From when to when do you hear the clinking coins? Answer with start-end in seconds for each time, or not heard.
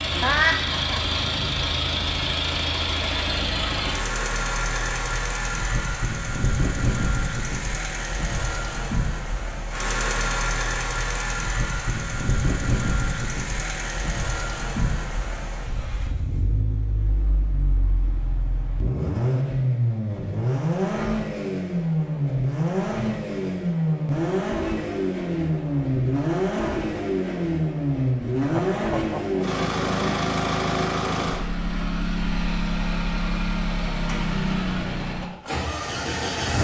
not heard.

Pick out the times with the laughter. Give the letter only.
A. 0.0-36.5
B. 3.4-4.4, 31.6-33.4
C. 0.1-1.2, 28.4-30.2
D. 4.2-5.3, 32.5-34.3
C.